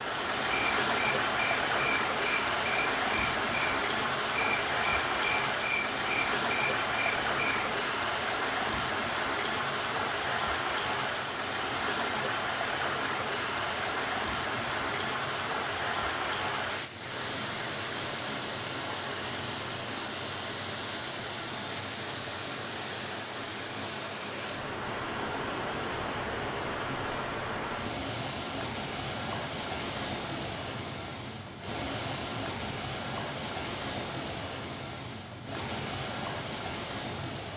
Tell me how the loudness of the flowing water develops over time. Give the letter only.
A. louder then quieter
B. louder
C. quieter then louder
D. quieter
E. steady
D.